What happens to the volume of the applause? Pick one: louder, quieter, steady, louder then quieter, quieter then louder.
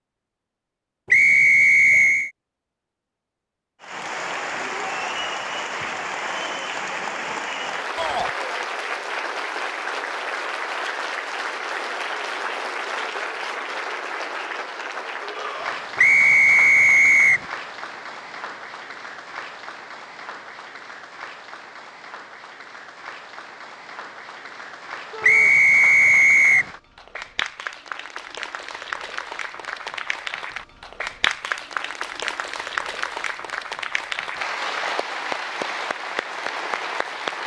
quieter then louder.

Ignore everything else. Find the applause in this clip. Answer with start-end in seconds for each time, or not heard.
3.8-37.4.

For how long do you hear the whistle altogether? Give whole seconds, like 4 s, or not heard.
4 s.